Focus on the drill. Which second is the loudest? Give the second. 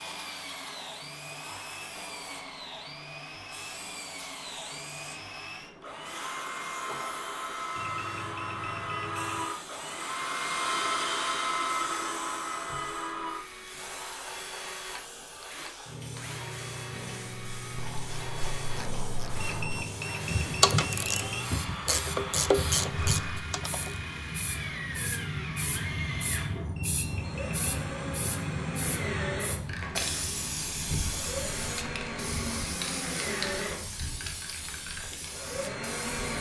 11 s.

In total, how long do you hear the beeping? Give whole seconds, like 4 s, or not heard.
5 s.